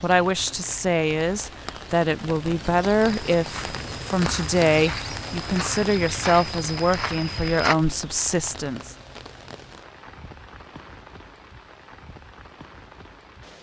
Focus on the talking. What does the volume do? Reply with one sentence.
The loudness of the talking stays about the same.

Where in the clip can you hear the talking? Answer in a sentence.
The talking can be heard from 0.0 to 8.9 s.